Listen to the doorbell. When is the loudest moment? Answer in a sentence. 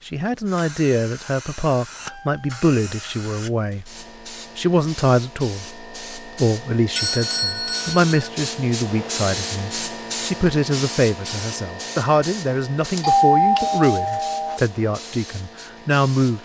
The volume of the doorbell peaks at 13 seconds.